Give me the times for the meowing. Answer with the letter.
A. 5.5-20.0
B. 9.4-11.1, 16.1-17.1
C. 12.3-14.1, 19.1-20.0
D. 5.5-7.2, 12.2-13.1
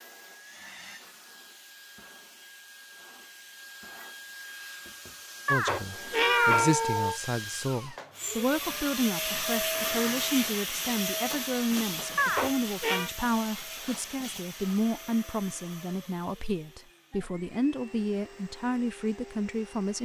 D.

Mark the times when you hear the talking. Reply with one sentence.
The talking can be heard from 5.5 to 20.0 s.